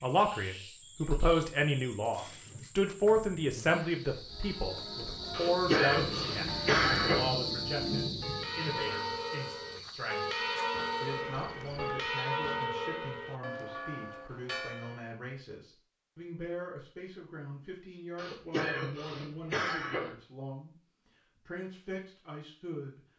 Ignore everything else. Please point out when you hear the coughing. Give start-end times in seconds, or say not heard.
5.3-7.2, 18.1-20.1.